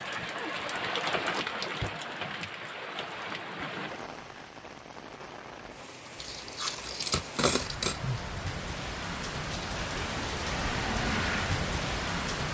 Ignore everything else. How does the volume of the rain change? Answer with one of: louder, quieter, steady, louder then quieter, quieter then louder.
quieter then louder.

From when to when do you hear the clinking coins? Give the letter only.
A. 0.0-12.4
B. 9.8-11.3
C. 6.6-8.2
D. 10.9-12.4
C.